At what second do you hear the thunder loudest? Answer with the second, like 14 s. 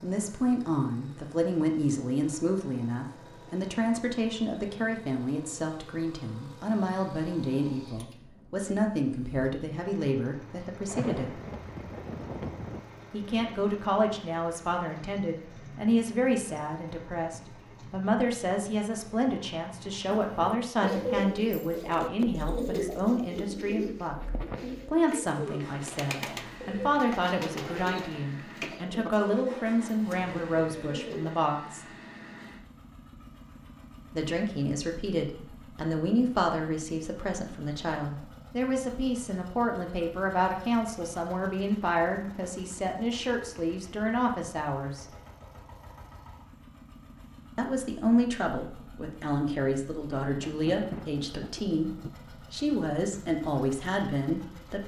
11 s.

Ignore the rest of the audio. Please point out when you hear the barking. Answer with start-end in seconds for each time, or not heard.
not heard.